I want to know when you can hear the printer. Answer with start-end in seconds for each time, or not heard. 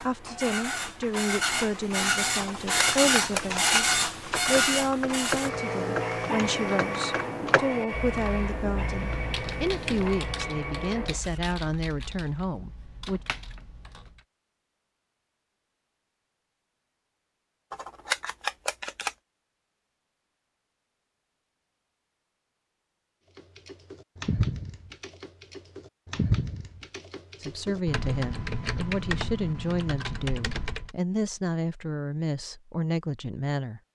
0.0-11.6.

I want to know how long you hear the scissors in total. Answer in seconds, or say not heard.
3 s.